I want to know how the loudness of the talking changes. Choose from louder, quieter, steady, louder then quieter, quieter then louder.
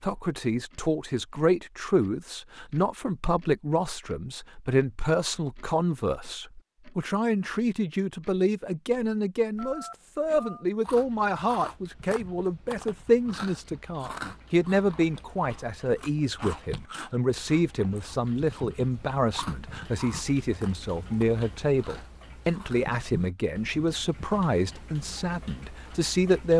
steady.